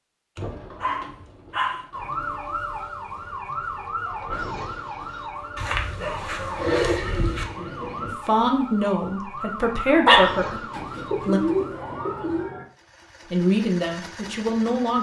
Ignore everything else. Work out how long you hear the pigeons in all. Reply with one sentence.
You can hear the pigeons for 6 seconds altogether.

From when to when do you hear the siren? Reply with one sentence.
You can hear the siren from 1.9 to 12.7 s.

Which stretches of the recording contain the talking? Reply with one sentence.
You can hear the talking from 8.1 to 11.4 s and from 13.3 to 14.9 s.